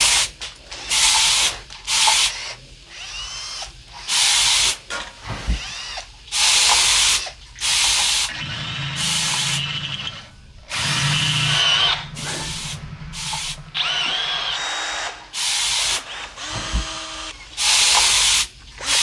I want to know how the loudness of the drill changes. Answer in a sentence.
The volume of the drill goes up, then down.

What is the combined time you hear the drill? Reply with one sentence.
The drill can be heard for 19 seconds in total.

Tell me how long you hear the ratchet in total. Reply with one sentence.
You can't hear the ratchet here.